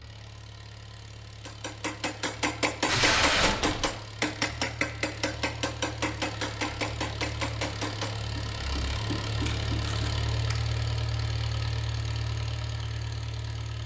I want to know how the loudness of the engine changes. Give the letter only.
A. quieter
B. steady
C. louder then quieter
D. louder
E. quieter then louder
D.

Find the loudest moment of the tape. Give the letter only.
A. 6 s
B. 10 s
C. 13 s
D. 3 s
D.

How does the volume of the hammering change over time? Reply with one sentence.
The volume of the hammering goes down.